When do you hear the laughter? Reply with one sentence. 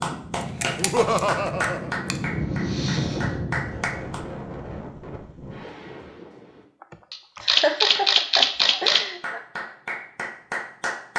You can hear the laughter from 0.8 to 1.9 s and from 6.8 to 9.4 s.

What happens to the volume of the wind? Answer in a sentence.
The loudness of the wind goes up, then down.